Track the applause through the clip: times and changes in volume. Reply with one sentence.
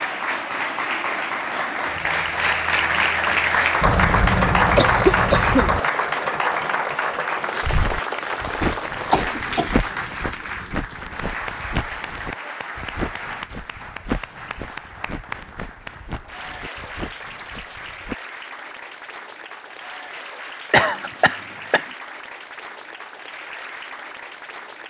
You can hear the applause from 0.0 to 24.8 s, getting quieter.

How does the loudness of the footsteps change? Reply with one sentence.
The volume of the footsteps goes down.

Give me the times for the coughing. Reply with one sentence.
You can hear the coughing from 3.8 to 5.8 s, from 8.6 to 10.2 s and from 20.7 to 21.9 s.